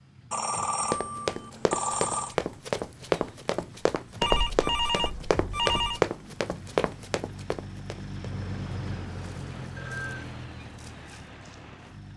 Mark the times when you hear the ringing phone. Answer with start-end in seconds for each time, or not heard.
0.3-2.4, 4.2-6.0, 8.3-10.2.